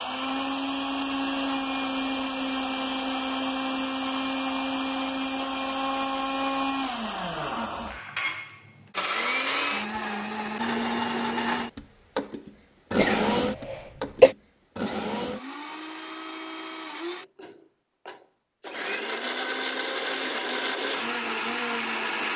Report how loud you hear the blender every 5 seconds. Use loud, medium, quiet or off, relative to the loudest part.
loud, loud, loud, medium, loud.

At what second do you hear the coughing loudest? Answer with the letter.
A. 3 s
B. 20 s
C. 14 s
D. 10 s
C.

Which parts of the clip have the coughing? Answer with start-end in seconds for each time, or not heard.
12.9-14.3.